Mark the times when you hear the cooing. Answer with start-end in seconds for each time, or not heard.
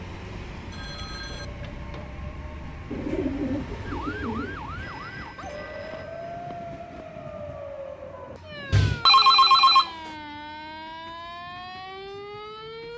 2.9-4.9, 8.6-10.1.